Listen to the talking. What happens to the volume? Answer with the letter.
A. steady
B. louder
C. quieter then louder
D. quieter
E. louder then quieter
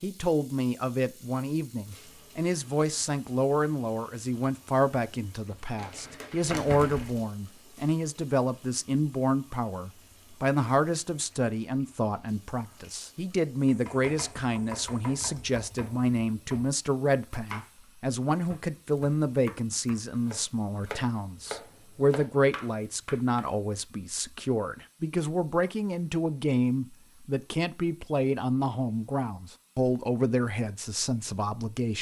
A.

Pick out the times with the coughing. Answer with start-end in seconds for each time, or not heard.
not heard.